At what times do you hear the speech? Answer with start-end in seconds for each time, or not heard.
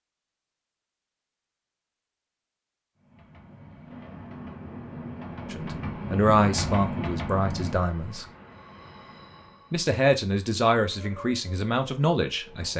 5.5-8.2, 9.7-12.7.